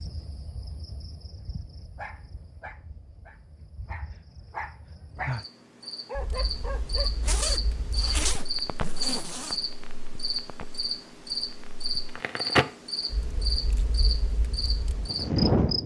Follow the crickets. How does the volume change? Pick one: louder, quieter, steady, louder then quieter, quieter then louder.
louder.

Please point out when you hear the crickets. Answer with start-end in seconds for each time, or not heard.
0.0-15.8.